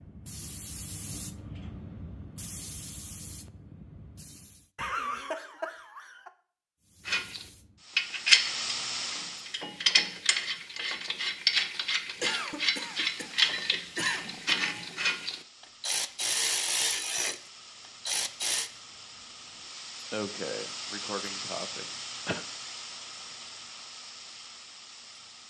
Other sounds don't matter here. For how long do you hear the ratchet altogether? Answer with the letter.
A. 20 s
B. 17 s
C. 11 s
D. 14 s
C.